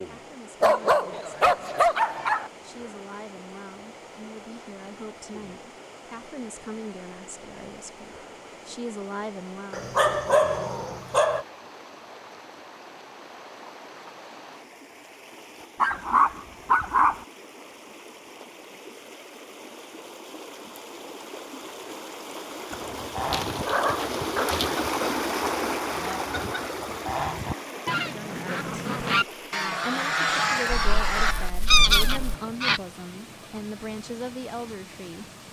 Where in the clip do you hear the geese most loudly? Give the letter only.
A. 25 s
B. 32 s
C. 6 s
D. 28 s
B.